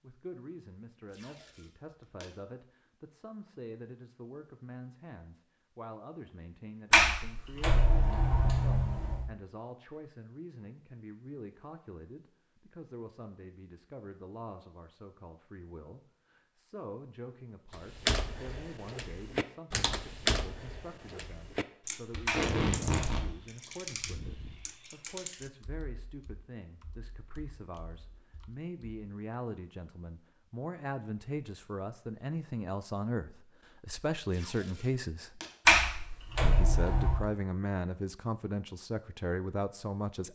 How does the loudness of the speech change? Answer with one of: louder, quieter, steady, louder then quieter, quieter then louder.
louder.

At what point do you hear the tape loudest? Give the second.
23 s.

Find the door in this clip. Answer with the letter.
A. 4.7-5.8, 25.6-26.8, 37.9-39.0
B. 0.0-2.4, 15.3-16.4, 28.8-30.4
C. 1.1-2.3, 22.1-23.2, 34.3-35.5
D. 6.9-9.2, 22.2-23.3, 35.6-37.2
D.